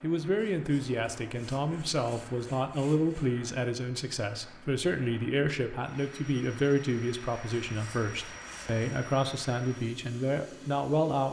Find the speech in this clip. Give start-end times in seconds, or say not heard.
0.0-11.2.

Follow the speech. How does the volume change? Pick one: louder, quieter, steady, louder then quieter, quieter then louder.
steady.